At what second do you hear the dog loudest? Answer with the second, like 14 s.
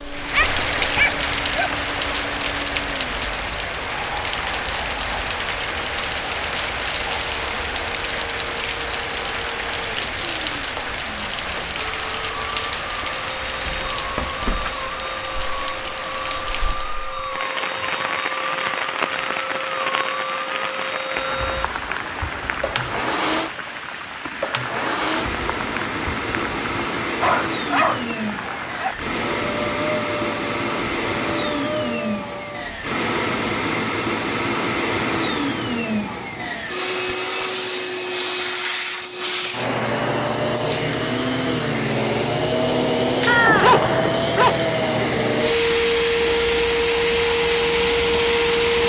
44 s.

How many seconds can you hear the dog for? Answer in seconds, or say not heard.
5 s.